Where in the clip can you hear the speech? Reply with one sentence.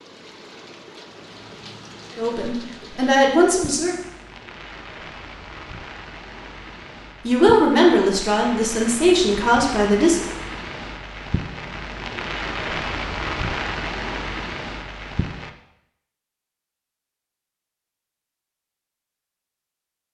You can hear the speech from 2.1 to 4.0 s and from 7.2 to 10.2 s.